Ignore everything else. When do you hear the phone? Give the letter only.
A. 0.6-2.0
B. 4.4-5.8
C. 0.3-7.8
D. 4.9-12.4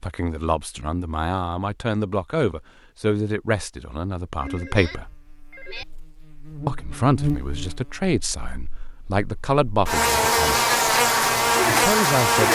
B.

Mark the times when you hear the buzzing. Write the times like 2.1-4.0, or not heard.
4.9-12.4.